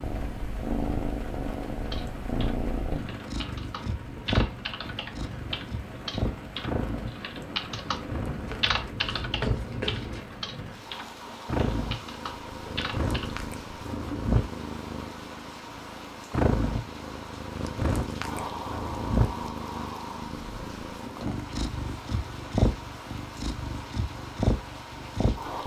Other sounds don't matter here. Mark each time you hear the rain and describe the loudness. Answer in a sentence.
The rain can be heard from 0.0 to 25.6 s, at a steady volume.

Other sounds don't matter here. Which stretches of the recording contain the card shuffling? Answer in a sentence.
You can hear the card shuffling from 8.6 to 10.2 s.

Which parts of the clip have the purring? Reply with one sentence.
You can hear the purring from 0.0 to 25.6 s.